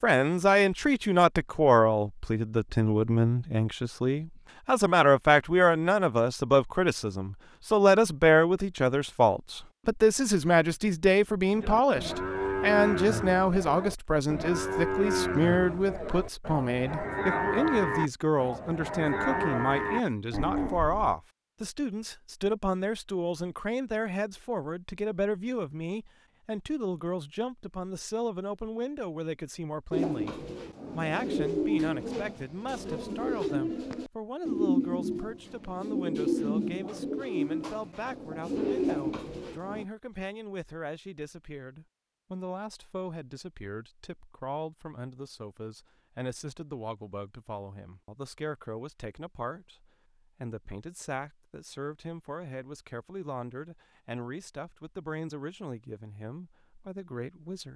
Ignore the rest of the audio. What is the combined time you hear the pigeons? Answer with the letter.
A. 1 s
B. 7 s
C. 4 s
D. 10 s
D.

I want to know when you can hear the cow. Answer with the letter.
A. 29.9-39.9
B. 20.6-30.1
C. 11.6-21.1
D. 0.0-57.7
C.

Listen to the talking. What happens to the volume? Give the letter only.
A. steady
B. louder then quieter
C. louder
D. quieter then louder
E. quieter
E.